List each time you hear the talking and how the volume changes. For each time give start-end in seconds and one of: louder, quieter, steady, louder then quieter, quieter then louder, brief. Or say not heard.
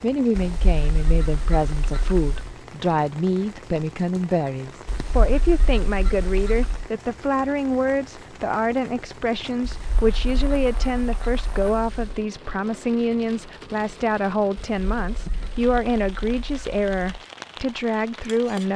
0.0-18.7 steady.